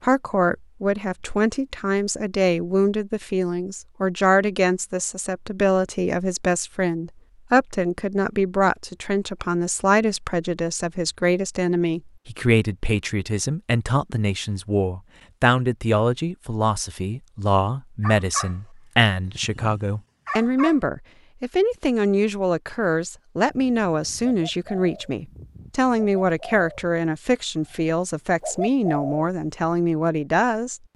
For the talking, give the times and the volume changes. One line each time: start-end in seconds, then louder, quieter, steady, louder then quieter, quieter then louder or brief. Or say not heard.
0.0-30.8 steady.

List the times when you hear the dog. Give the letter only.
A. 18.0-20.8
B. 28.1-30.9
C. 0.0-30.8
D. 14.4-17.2
A.